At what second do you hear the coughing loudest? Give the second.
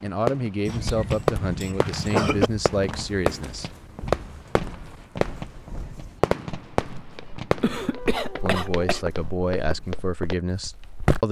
2 s.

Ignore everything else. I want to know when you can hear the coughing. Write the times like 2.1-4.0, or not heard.
0.7-2.5, 7.6-9.1.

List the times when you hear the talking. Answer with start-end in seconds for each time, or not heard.
0.0-3.7, 8.4-11.2.